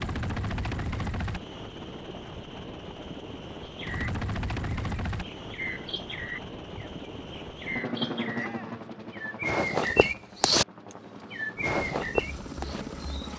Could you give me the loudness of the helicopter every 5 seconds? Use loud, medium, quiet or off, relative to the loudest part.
loud, loud, medium.